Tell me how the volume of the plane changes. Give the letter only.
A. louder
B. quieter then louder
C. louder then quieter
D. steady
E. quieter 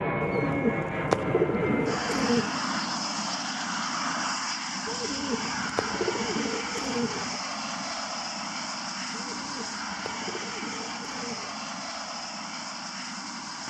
E.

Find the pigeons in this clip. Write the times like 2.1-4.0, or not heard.
0.2-2.5, 4.8-7.4, 9.1-11.7.